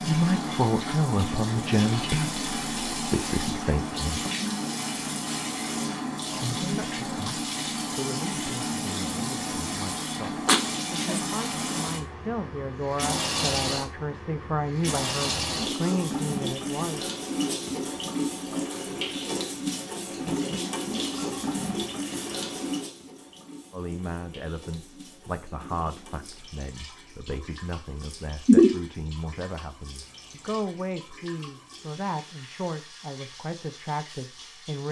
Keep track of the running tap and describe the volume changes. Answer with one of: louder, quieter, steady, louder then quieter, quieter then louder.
quieter.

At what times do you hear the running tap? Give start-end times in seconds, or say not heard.
0.0-34.8.